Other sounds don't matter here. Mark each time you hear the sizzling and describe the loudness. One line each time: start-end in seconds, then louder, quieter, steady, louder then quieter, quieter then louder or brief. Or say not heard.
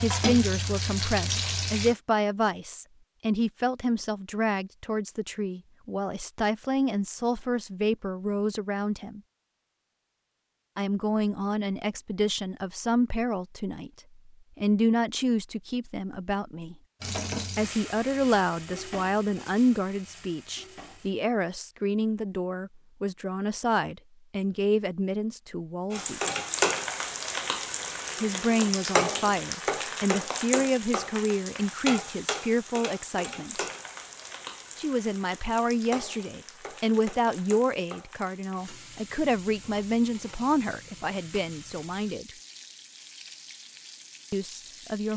0.0-1.9 brief
17.0-21.1 quieter
25.9-45.1 quieter.